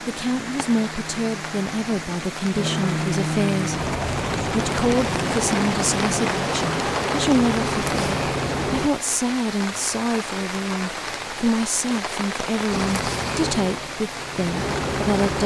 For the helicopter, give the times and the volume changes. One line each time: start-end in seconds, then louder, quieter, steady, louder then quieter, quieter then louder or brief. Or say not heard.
0.0-8.9 louder
12.7-15.4 brief.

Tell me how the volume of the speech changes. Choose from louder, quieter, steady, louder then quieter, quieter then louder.
steady.